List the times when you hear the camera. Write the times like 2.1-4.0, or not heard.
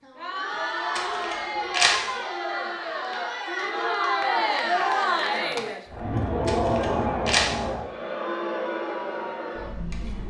0.9-2.0, 6.5-7.5.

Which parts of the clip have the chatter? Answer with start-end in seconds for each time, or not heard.
0.0-10.2.